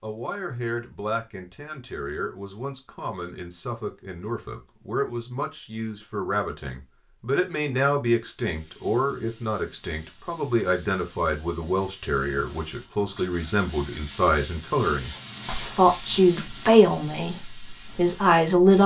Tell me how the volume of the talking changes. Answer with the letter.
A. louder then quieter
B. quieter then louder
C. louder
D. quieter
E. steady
C.